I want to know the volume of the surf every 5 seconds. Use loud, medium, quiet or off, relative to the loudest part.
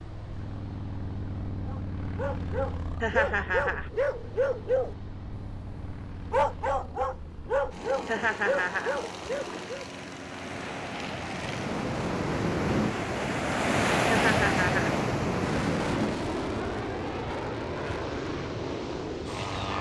quiet, quiet, loud, medium.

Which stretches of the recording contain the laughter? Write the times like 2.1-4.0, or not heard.
3.0-3.9, 8.1-8.9, 14.2-14.9.